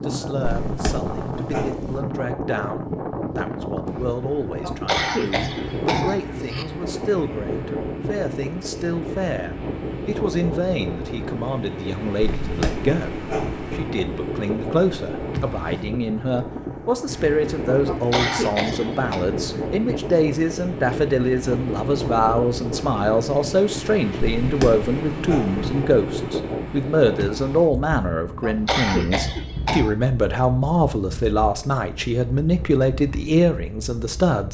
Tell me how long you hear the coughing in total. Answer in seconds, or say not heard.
5 s.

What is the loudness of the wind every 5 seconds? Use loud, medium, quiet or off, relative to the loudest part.
loud, loud, loud, loud, loud, loud, medium.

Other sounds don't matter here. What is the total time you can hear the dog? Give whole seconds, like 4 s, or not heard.
5 s.